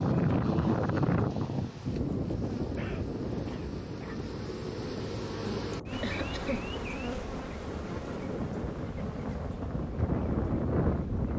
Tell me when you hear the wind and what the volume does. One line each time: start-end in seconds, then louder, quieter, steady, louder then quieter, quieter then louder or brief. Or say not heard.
0.0-11.3 quieter then louder.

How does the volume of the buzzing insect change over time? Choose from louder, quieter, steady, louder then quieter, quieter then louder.
louder then quieter.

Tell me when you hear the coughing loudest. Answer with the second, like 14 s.
6 s.